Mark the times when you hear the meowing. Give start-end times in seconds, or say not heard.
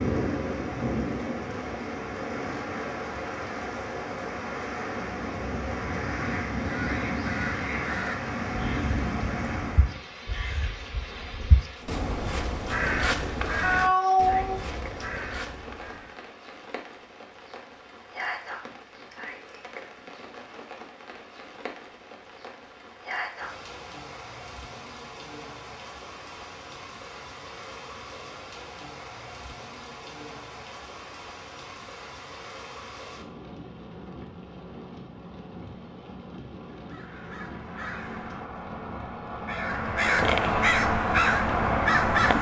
13.6-15.1.